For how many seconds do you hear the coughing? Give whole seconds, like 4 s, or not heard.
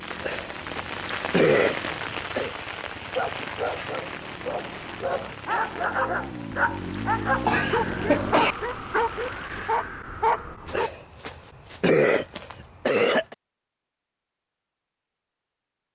6 s.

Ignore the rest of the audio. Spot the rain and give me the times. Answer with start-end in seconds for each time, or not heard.
0.0-9.8.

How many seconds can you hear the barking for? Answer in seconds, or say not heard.
8 s.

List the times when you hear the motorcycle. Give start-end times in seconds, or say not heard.
0.0-8.4.